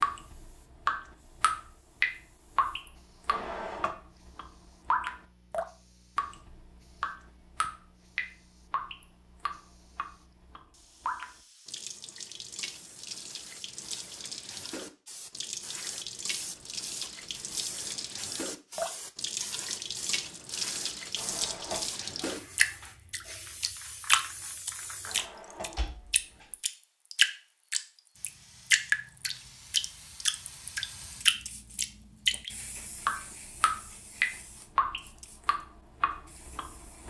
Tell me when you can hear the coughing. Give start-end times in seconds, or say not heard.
not heard.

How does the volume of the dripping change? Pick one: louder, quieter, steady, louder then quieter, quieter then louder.
quieter then louder.